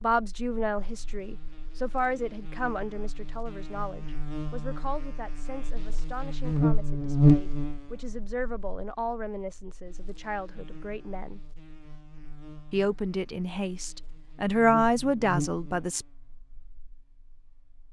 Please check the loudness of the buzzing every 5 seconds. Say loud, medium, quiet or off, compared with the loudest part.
quiet, loud, quiet, medium.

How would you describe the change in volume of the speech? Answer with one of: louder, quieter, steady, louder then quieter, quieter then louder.
quieter then louder.